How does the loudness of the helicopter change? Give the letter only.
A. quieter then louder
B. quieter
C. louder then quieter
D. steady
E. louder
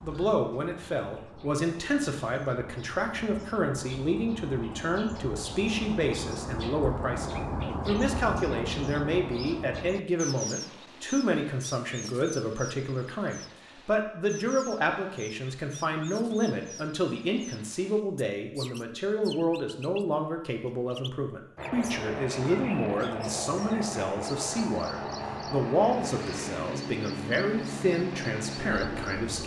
D.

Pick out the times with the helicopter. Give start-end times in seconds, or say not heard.
21.6-29.4.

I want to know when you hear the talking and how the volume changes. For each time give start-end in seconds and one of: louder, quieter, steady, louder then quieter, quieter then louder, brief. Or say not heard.
0.0-29.4 steady.